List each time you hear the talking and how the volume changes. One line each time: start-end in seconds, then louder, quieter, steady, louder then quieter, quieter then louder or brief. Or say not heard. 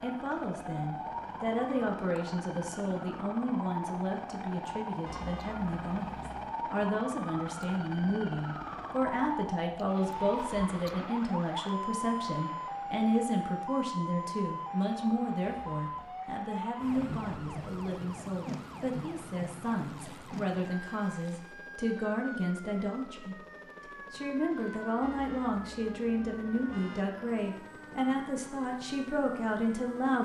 0.0-23.4 steady
24.1-30.2 steady.